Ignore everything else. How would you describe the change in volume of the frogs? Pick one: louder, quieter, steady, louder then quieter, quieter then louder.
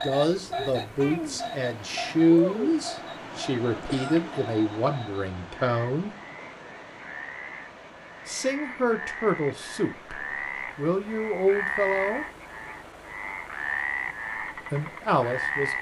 quieter then louder.